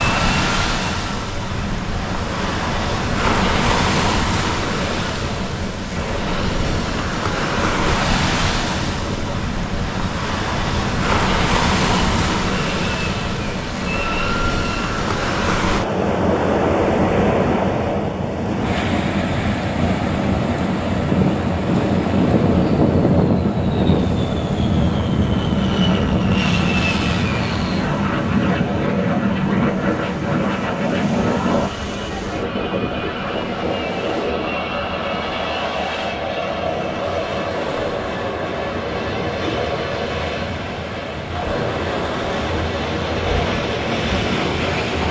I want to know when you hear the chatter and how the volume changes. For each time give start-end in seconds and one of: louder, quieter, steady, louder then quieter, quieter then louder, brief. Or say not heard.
not heard.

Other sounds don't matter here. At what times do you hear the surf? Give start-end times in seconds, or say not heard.
0.0-45.0.